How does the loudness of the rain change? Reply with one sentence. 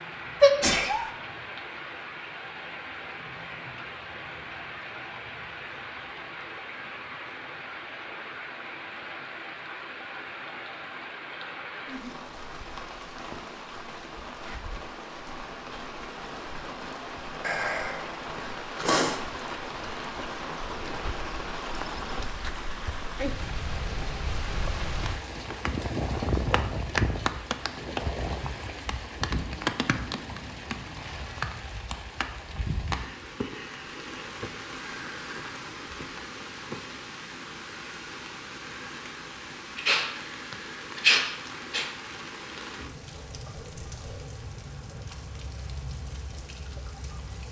The loudness of the rain goes up, then down.